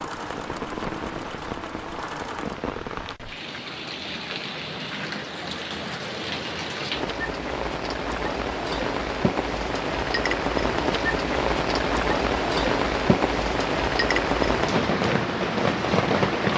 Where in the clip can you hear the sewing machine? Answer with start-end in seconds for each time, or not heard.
0.0-2.6.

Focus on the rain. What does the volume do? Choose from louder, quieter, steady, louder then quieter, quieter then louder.
louder.